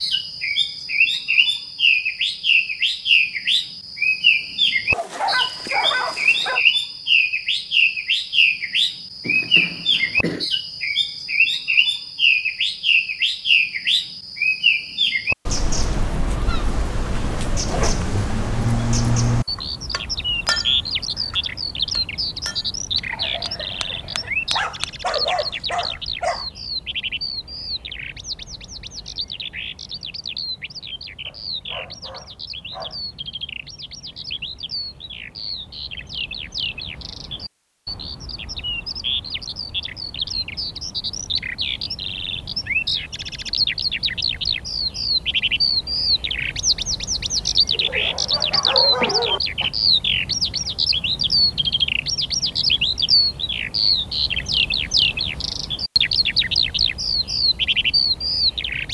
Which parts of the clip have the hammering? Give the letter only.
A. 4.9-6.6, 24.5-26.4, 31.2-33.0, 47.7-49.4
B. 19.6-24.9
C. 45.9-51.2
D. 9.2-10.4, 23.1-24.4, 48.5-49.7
B.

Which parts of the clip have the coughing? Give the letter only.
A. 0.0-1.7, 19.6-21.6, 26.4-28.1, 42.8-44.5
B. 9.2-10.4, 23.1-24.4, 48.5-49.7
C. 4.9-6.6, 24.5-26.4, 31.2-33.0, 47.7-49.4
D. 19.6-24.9
B.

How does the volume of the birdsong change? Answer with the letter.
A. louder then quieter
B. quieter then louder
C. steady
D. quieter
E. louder
B.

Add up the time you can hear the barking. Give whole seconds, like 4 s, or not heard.
7 s.